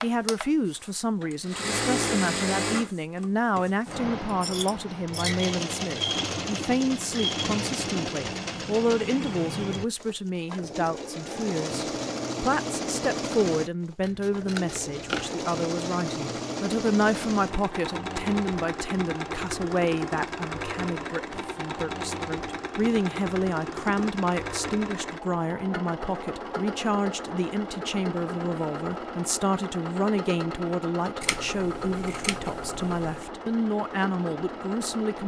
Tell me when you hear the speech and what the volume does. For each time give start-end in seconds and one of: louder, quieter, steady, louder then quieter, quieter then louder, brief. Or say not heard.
0.0-35.2 steady.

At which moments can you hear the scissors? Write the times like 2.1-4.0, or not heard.
4.2-5.5, 14.0-15.3, 31.2-33.2.